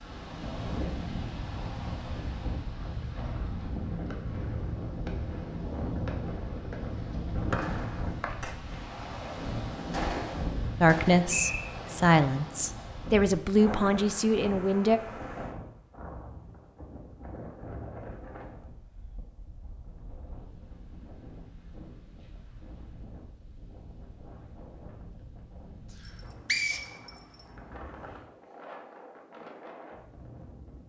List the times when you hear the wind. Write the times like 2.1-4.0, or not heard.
0.0-30.8.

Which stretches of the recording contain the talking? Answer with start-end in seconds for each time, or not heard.
10.8-15.0.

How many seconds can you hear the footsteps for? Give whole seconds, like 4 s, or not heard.
not heard.